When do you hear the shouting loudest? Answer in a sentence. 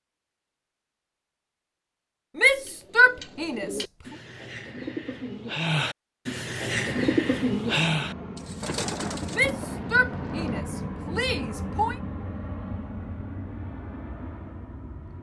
The loudest moment of the shouting is at 3 seconds.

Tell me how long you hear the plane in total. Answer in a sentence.
You can hear the plane for 8 seconds altogether.